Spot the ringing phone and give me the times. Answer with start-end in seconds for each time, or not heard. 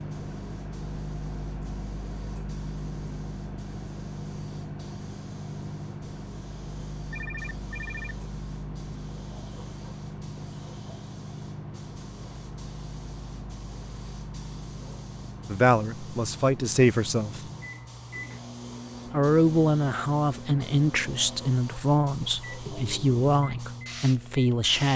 7.1-8.2.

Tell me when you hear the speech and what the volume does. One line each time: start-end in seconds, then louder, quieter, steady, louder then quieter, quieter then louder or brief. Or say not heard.
15.5-17.4 brief
19.1-24.9 steady.